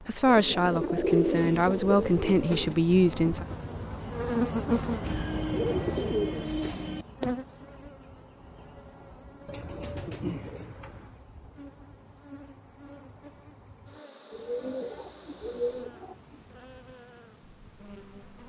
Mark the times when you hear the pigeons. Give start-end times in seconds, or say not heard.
0.2-2.8, 5.0-7.0, 9.4-11.2, 14.3-16.4.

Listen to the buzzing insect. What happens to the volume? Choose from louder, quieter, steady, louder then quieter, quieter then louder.
louder then quieter.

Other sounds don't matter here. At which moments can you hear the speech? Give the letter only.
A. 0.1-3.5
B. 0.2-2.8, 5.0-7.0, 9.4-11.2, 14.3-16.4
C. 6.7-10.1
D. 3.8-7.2
A.